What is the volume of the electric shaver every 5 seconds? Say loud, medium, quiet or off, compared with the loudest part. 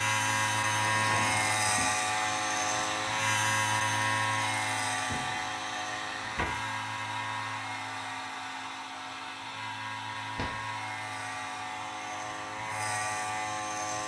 loud, medium, medium.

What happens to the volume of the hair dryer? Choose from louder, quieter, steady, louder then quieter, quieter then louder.
quieter.